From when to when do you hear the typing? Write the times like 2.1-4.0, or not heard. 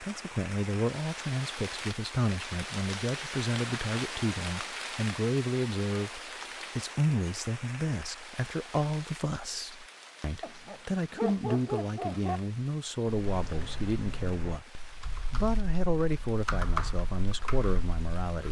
13.1-18.4.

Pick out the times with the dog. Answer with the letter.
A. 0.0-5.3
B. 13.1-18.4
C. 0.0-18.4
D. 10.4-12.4
D.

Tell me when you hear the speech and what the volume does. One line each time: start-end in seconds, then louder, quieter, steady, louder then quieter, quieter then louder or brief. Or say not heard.
0.0-18.4 steady.